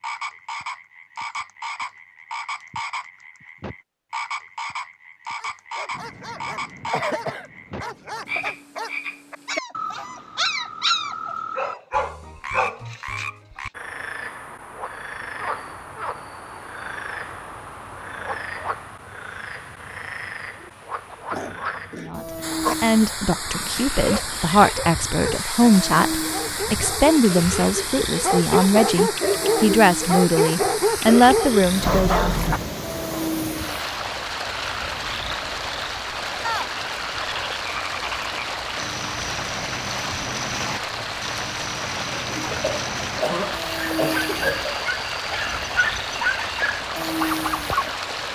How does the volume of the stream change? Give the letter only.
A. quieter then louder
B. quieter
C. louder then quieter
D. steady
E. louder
D.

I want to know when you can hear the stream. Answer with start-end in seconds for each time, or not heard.
22.4-48.3.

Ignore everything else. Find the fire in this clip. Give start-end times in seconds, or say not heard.
not heard.